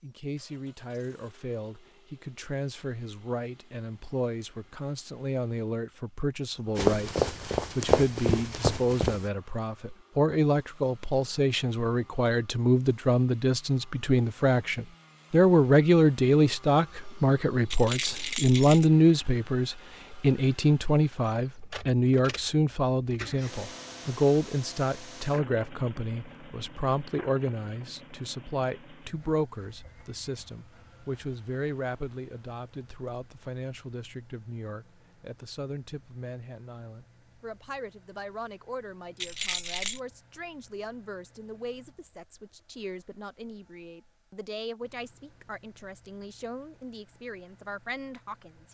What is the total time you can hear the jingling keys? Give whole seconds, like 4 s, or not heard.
2 s.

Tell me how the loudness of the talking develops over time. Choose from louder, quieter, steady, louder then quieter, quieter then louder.
louder then quieter.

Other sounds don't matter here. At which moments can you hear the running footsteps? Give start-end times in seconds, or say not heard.
6.8-9.2.